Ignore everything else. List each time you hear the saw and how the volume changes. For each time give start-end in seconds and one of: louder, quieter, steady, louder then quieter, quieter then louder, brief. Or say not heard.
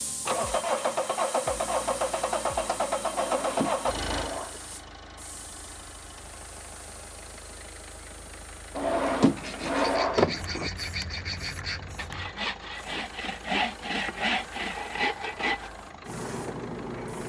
9.3-15.7 louder.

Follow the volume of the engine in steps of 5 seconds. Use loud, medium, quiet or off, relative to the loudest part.
loud, quiet, quiet, quiet.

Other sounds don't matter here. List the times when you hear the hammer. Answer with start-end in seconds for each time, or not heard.
not heard.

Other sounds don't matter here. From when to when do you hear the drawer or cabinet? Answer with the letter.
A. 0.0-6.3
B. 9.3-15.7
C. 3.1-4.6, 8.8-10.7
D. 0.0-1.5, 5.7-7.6
C.